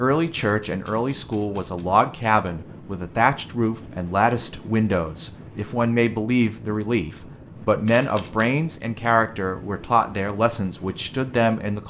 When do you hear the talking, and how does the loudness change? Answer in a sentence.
You can hear the talking from 0.0 to 11.8 s, at a steady volume.